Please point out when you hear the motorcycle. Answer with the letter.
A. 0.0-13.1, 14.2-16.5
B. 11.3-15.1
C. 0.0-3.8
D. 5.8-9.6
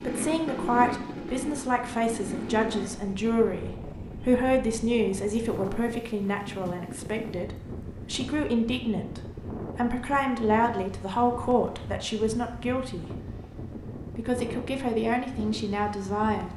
C.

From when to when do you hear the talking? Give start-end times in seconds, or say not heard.
0.0-13.1, 14.2-16.5.